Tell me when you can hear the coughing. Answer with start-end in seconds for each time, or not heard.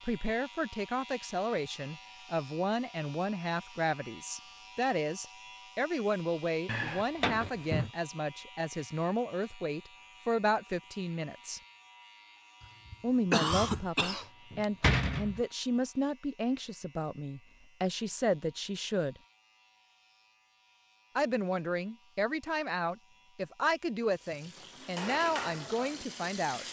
12.6-14.7.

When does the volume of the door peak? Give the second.
15 s.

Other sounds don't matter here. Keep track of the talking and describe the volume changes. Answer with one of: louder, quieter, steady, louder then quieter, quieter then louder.
steady.